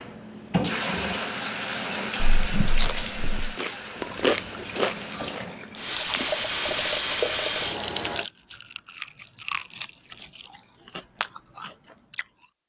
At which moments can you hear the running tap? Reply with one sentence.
The running tap can be heard from 0.0 to 8.3 s.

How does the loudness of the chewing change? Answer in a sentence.
The volume of the chewing goes down.